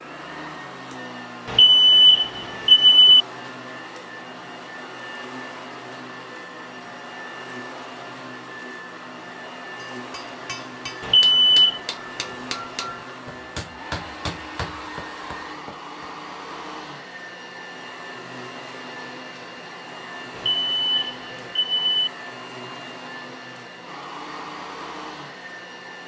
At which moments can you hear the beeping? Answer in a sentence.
You can hear the beeping from 1.4 to 3.2 s, from 11.0 to 11.8 s and from 20.4 to 22.1 s.